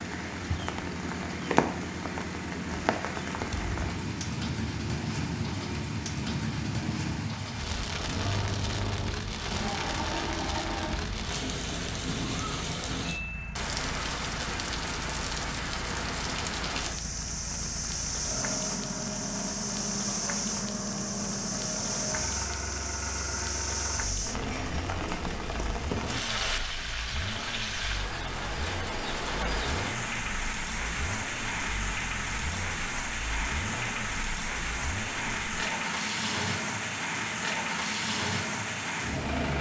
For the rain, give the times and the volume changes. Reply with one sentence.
You can hear the rain from 0.0 to 39.5 s, at a steady volume.